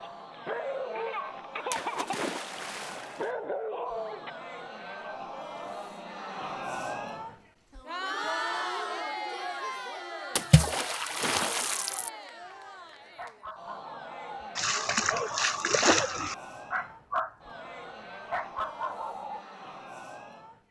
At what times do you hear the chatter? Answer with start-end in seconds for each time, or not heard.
0.0-20.6.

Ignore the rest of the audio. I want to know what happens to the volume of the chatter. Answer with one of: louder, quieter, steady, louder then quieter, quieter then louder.
louder then quieter.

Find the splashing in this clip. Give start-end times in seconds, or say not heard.
1.7-3.2, 10.3-12.1, 14.6-16.4.